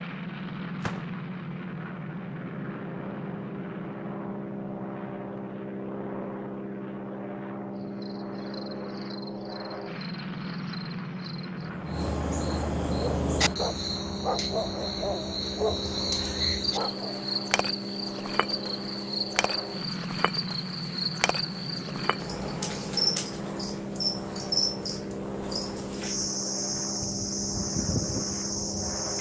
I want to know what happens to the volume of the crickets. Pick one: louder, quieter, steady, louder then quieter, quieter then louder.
louder.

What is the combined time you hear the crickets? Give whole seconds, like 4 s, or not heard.
21 s.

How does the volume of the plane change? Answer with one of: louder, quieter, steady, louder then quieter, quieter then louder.
steady.